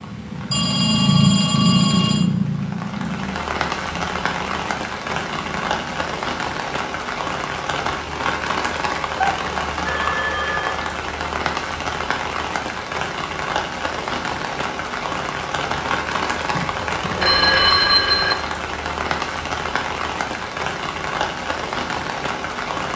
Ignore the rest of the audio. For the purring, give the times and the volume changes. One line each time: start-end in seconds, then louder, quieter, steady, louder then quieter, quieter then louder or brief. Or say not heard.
0.0-6.2 quieter.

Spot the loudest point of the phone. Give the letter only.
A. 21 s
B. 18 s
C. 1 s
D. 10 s
B.